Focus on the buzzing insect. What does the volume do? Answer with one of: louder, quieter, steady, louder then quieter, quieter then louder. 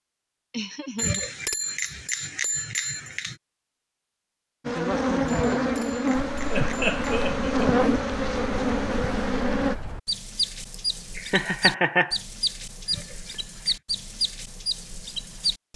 steady.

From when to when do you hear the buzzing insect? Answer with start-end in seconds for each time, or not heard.
4.7-9.8.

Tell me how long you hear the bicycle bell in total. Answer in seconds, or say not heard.
5 s.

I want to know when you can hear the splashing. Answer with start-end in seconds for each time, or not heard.
not heard.